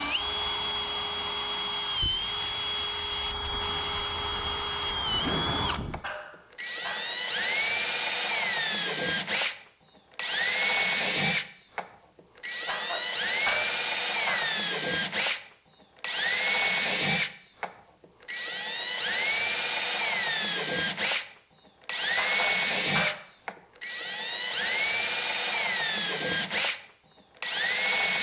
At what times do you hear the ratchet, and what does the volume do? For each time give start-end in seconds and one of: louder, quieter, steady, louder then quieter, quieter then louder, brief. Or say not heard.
not heard.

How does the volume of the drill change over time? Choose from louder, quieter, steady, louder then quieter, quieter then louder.
steady.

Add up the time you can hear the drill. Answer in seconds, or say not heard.
28 s.